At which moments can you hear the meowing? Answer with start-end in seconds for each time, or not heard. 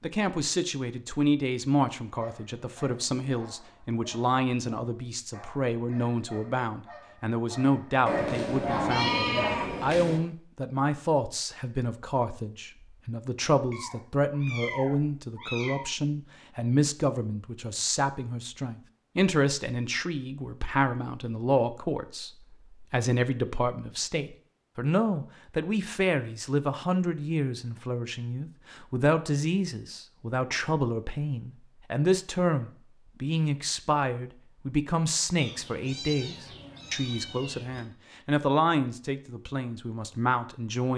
8.1-10.2, 13.7-15.9, 35.4-37.9.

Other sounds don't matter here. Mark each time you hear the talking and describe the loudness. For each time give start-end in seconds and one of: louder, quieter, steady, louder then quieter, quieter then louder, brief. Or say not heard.
0.0-40.9 steady.